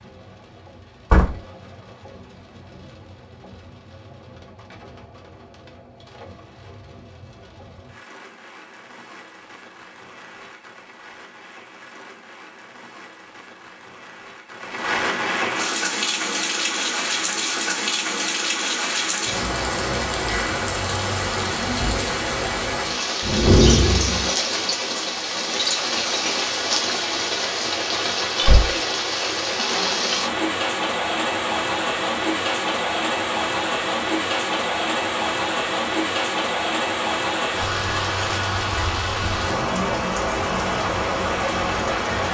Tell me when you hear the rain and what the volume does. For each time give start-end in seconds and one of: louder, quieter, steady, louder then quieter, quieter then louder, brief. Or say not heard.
0.0-42.2 louder.